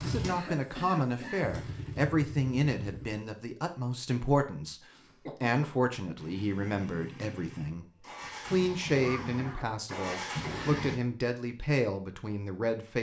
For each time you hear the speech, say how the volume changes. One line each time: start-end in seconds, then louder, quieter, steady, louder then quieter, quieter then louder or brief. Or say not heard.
0.0-12.9 steady.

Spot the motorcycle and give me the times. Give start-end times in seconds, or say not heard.
0.0-3.1, 6.2-10.9.